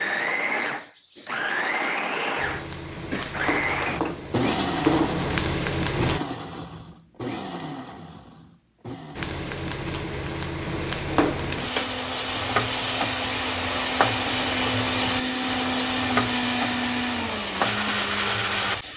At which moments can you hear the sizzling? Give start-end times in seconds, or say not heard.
2.4-6.2, 9.2-18.9.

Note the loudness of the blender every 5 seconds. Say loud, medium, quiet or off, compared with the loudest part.
loud, medium, medium, loud.